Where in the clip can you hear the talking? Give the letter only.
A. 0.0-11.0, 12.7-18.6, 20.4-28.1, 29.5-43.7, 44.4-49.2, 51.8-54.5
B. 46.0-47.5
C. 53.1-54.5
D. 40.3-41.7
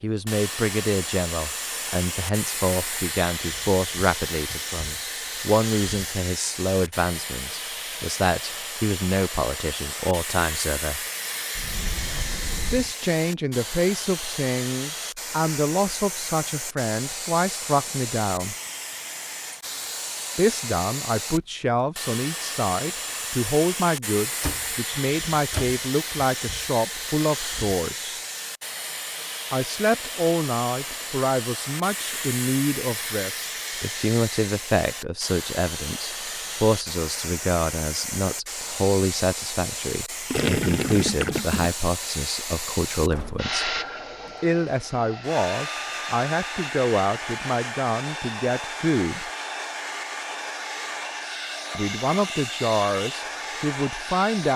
A.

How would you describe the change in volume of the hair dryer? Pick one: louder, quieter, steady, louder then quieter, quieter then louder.
steady.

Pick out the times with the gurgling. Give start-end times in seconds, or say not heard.
40.3-41.7.